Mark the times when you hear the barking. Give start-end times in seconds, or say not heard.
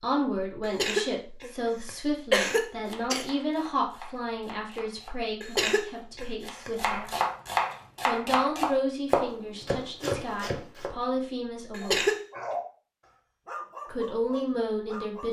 11.8-15.2.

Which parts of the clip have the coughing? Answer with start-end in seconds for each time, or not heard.
0.6-3.2, 5.4-6.7, 11.7-12.2.